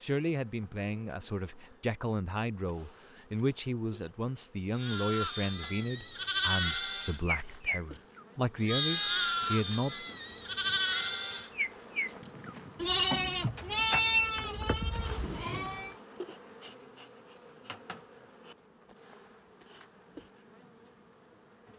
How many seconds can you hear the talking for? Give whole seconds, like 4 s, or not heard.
10 s.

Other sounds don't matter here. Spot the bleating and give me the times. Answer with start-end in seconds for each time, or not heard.
4.8-15.9.